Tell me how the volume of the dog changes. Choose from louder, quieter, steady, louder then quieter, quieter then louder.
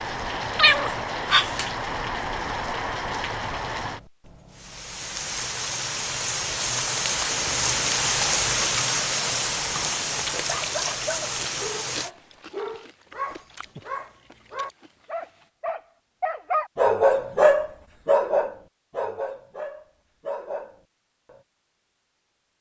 louder then quieter.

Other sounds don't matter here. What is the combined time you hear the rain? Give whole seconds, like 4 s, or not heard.
12 s.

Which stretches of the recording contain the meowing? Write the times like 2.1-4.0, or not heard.
0.2-1.7.